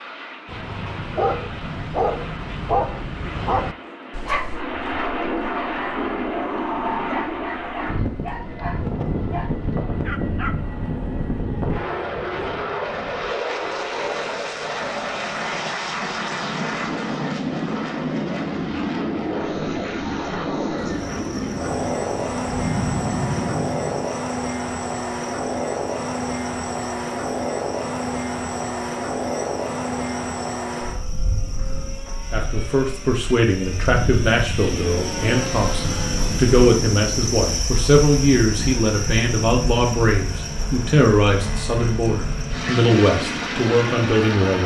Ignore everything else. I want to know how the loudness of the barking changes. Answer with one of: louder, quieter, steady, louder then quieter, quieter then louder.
quieter.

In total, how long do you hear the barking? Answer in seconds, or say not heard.
10 s.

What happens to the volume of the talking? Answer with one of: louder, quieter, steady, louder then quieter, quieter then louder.
steady.